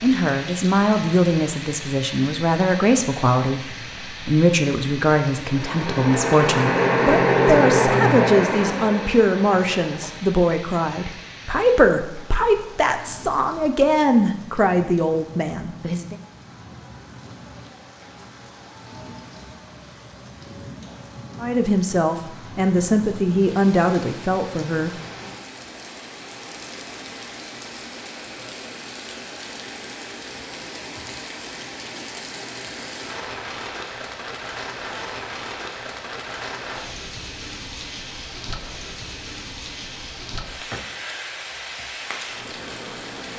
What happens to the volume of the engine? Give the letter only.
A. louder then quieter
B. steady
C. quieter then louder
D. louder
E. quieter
A.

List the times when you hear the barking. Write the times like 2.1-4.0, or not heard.
not heard.